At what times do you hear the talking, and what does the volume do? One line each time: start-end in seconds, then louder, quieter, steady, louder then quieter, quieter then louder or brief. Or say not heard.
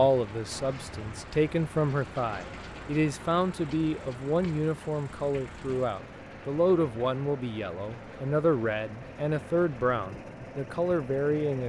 0.0-11.6 steady.